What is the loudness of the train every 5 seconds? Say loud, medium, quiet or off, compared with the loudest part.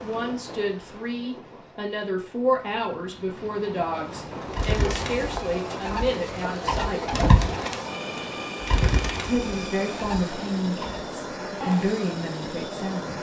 medium, loud, loud.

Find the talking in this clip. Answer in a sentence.
The talking can be heard from 0.0 to 7.2 s and from 9.2 to 13.1 s.